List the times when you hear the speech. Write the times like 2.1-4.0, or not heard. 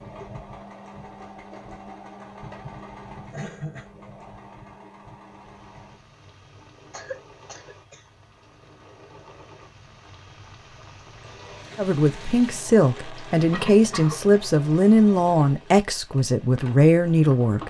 11.8-17.6.